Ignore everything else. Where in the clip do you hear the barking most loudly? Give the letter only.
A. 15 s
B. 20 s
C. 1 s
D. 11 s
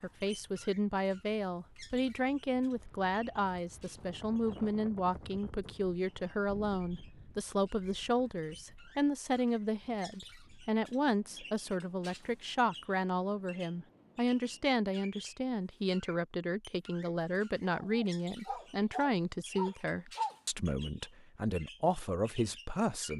B.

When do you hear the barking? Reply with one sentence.
You can hear the barking from 17.7 to 20.4 s.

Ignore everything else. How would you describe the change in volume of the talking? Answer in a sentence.
The volume of the talking stays about the same.